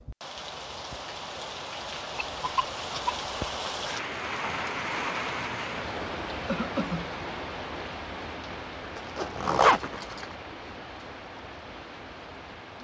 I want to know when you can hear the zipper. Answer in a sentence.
The zipper can be heard from 8.9 to 10.3 s.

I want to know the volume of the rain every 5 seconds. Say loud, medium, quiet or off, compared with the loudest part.
loud, loud, medium.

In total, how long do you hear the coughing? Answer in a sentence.
You can hear the coughing for 2 seconds altogether.